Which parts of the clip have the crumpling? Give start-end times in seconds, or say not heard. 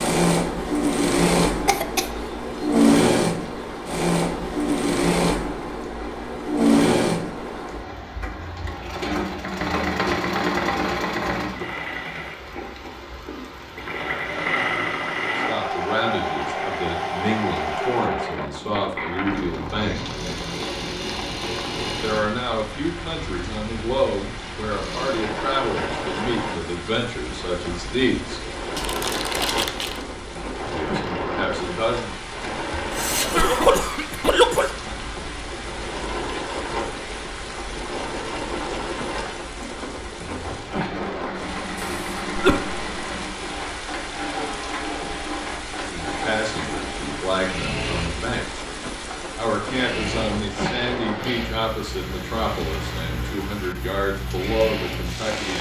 28.8-30.1.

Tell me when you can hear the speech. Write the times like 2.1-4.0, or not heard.
15.3-20.1, 22.0-28.4, 30.7-32.1, 45.7-48.5, 49.4-55.5.